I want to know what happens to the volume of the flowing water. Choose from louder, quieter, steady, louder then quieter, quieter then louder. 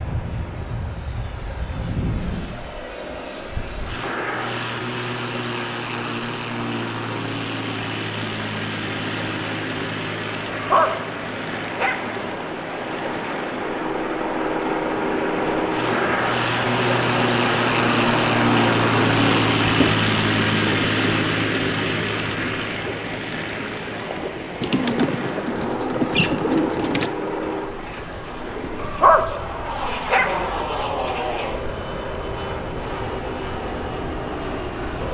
louder then quieter.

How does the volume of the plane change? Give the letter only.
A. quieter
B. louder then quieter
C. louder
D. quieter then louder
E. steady
B.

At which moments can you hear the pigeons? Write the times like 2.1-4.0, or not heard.
24.6-27.1.